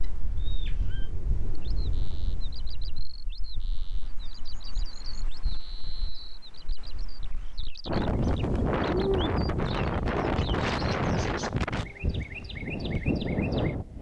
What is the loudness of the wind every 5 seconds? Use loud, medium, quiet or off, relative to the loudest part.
quiet, loud, loud.